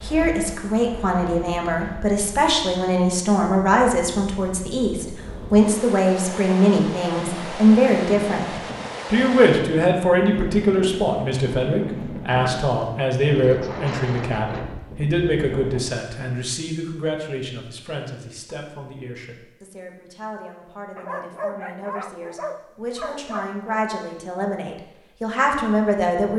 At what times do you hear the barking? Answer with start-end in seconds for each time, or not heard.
20.9-23.8.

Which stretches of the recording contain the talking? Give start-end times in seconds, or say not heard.
0.0-26.3.